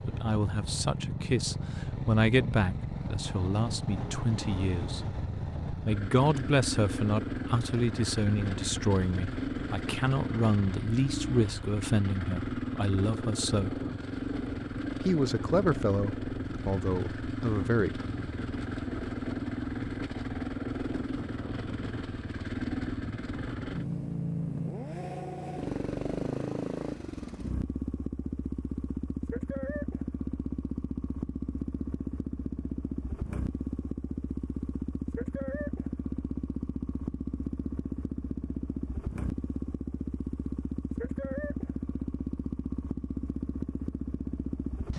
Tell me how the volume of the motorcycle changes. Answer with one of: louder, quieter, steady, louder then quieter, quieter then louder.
steady.